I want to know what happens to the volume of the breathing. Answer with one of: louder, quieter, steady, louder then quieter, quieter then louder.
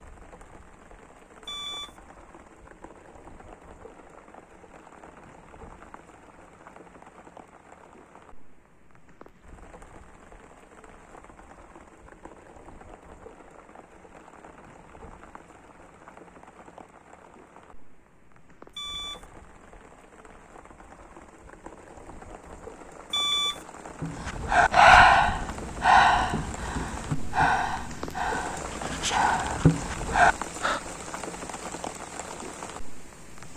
quieter then louder.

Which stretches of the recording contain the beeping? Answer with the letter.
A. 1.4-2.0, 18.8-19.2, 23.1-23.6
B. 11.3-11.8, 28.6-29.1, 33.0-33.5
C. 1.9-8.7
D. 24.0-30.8
A.